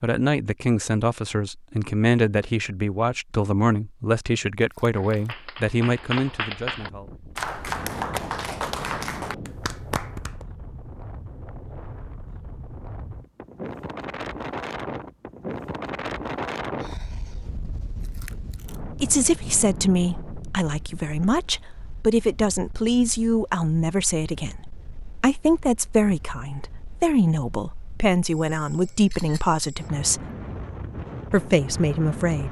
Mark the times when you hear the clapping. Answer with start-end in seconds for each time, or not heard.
4.9-10.4.